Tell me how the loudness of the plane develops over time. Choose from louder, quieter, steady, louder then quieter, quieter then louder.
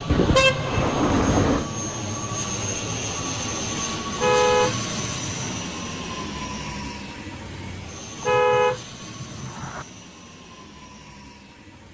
quieter.